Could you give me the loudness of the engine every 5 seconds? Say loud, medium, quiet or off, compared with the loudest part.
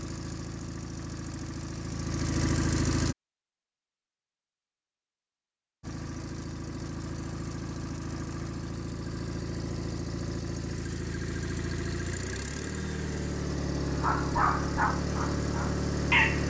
loud, medium, loud, loud.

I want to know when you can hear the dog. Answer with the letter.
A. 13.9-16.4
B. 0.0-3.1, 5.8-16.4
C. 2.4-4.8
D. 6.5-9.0
A.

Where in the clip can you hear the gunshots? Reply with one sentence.
The gunshots can't be heard in this clip.